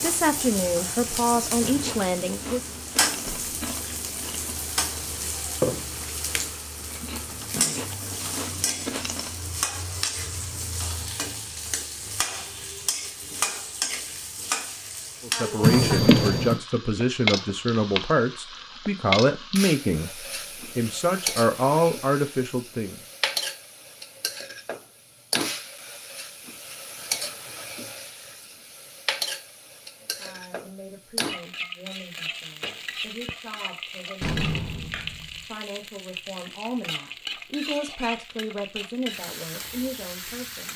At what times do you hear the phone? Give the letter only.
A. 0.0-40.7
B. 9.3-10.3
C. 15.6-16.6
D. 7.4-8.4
C.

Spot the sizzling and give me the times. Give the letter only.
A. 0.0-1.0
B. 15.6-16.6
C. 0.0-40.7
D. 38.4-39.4
C.